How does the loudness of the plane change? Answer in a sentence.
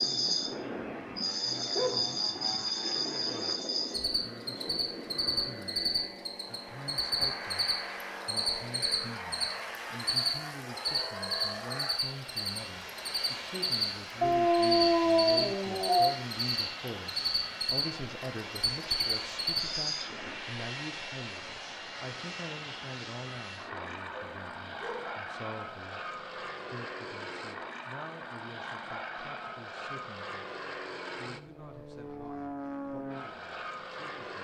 The loudness of the plane stays about the same.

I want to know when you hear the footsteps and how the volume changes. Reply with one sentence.
You can't hear the footsteps here.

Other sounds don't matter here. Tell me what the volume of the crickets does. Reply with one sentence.
The loudness of the crickets stays about the same.